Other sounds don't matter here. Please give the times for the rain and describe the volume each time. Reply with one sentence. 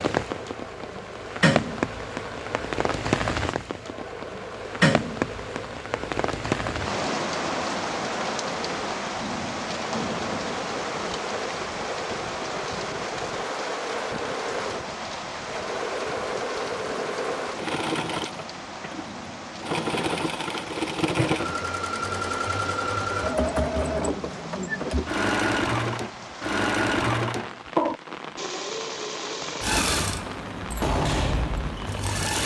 The rain can be heard from 0.0 to 32.2 s, getting quieter.